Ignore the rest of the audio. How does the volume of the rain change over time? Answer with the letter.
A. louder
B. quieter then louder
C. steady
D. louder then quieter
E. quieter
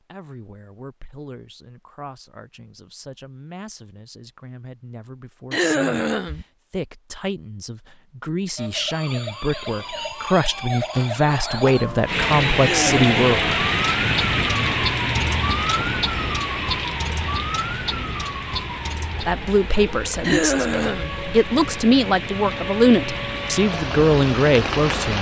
B.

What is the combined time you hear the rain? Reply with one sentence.
The rain can be heard for 13 seconds in total.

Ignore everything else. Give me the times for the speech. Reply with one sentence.
You can hear the speech from 0.1 to 13.3 s and from 19.2 to 25.1 s.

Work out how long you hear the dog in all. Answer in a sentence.
The dog can't be heard in this clip.